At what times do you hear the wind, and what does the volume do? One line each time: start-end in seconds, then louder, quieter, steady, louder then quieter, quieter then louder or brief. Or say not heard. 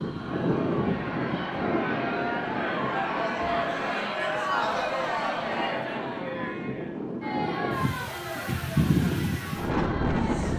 0.0-10.5 quieter then louder.